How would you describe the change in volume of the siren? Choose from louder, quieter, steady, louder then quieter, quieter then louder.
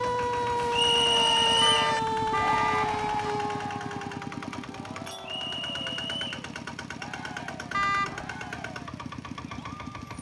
quieter.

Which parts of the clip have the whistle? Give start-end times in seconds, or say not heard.
0.7-1.9, 5.2-6.3.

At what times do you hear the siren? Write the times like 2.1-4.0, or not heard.
0.0-5.5.